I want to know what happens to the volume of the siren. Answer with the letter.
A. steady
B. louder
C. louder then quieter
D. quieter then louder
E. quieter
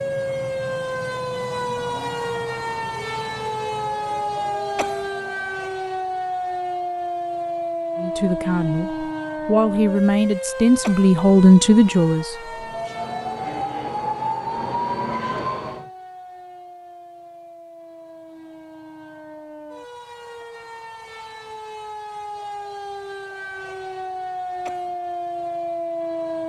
D.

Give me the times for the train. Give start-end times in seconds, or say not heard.
0.0-5.8, 12.4-15.9.